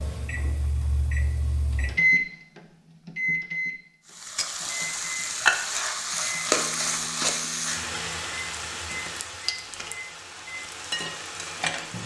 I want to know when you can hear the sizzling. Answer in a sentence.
The sizzling can be heard from 4.2 to 12.0 s.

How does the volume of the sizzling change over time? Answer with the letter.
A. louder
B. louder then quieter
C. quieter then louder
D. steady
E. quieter
E.